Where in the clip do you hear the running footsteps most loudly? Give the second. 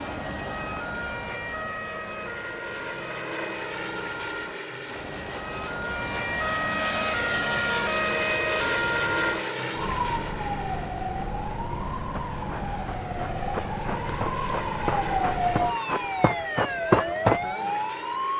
17 s.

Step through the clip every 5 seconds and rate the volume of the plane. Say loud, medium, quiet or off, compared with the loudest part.
medium, loud, medium, medium.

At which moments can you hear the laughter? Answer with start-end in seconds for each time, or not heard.
not heard.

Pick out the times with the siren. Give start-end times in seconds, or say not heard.
0.0-18.3.